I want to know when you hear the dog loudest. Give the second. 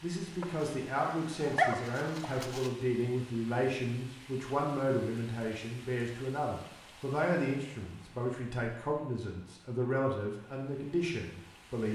2 s.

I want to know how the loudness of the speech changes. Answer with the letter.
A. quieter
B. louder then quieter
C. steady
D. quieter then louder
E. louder
C.